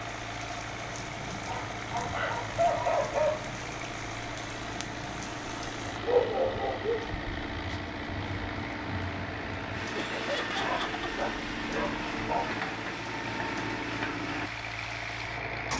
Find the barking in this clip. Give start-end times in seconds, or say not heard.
1.4-3.4, 6.0-7.0, 10.6-12.5.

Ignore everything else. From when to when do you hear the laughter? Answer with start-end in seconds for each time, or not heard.
9.9-11.1.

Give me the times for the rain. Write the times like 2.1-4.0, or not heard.
0.0-15.7.